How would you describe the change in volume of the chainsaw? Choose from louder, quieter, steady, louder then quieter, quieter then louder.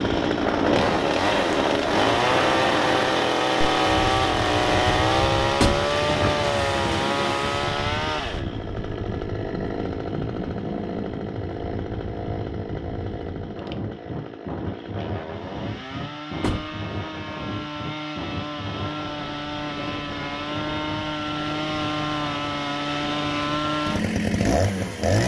quieter then louder.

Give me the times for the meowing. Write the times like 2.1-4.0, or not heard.
not heard.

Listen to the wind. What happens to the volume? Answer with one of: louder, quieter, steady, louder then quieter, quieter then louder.
quieter.